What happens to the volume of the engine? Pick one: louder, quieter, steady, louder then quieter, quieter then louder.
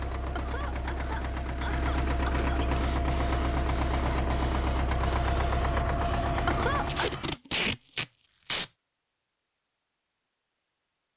louder.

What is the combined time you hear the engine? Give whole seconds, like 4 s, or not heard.
7 s.